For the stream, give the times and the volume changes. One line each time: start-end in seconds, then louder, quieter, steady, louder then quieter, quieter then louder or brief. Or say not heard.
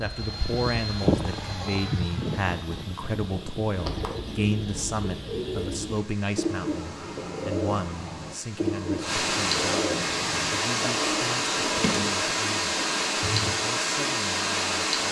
0.2-15.0 louder.